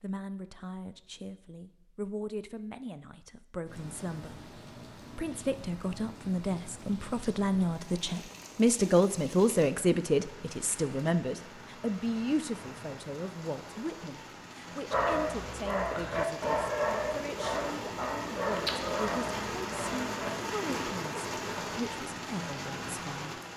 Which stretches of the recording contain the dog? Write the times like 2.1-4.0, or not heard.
14.9-20.3.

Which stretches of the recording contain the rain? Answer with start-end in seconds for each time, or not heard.
3.6-23.5.